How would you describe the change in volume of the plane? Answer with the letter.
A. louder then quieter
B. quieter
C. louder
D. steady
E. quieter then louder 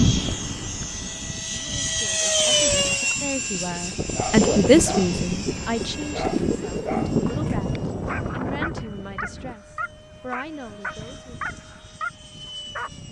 B.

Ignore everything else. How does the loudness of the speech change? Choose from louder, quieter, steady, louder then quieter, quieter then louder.
louder then quieter.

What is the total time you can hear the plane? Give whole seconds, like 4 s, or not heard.
13 s.